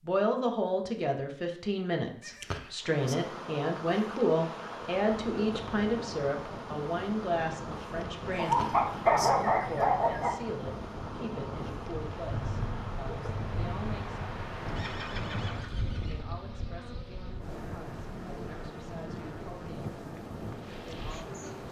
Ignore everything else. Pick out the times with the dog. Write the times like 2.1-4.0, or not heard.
8.3-10.3.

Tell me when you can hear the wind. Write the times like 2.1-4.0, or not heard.
5.0-21.6.